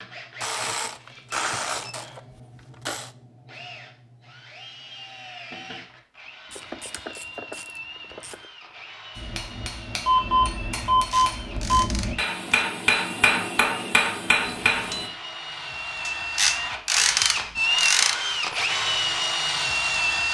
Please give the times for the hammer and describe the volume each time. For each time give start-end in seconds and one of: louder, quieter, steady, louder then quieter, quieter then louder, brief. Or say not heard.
9.2-15.1 louder.